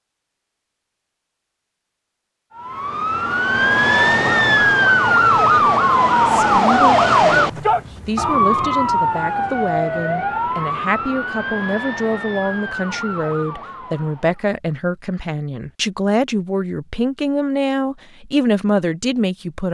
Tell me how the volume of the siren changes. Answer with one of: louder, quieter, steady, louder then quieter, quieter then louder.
quieter.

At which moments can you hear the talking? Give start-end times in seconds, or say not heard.
6.2-19.6.